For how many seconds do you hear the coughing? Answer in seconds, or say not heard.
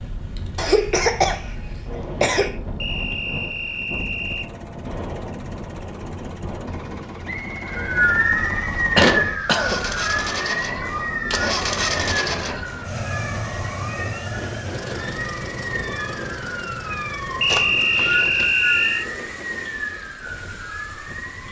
4 s.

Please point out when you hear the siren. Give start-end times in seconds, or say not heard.
7.7-21.4.